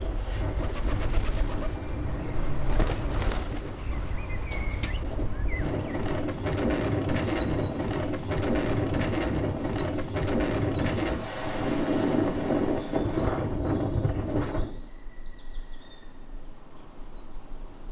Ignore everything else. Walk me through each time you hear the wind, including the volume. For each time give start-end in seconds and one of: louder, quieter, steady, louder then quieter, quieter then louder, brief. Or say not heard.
0.0-14.8 louder.